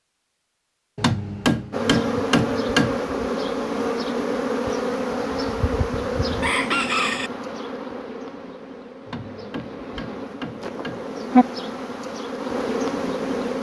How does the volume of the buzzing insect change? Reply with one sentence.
The volume of the buzzing insect goes down, then up.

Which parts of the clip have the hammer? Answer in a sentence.
The hammer can be heard from 0.9 to 3.0 s and from 9.1 to 11.1 s.